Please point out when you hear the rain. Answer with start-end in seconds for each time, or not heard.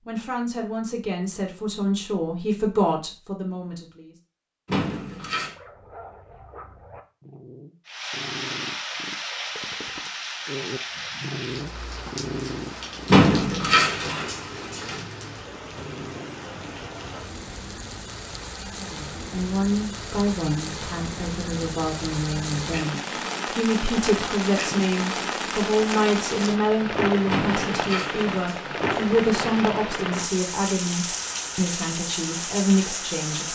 7.8-33.5.